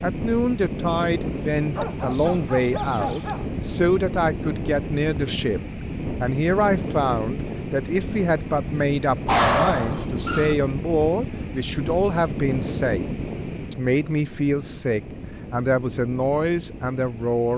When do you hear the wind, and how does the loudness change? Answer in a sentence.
You can hear the wind from 0.0 to 17.5 s, getting quieter.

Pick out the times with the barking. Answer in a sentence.
The barking can be heard from 1.8 to 3.5 s and from 9.2 to 10.6 s.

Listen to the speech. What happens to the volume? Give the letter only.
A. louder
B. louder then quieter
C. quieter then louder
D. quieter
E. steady
E.